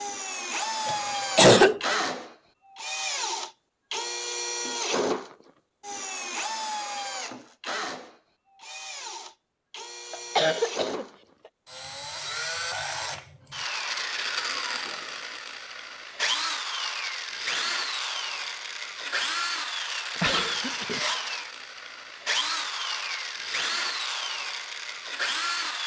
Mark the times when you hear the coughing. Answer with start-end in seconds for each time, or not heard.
0.8-1.9, 10.1-11.1, 20.1-21.0.